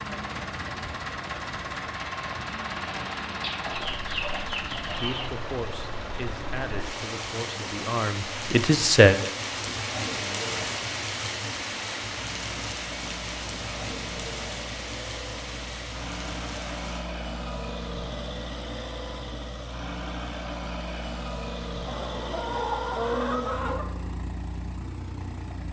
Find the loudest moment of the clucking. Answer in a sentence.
The loudest moment of the clucking is at 23 seconds.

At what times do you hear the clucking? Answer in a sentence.
The clucking can be heard from 3.4 to 5.3 s and from 21.9 to 23.9 s.